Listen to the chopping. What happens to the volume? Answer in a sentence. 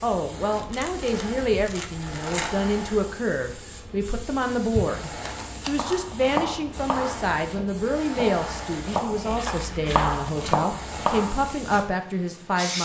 The volume of the chopping goes down, then up.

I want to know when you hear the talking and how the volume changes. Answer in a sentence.
The talking can be heard from 0.0 to 12.8 s, at a steady volume.